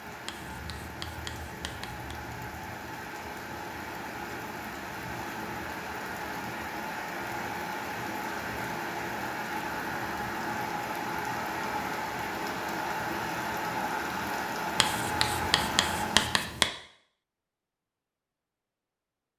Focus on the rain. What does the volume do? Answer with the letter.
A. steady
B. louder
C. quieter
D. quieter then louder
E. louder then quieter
B.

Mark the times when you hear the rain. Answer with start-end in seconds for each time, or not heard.
0.0-16.5.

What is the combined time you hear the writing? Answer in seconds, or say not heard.
4 s.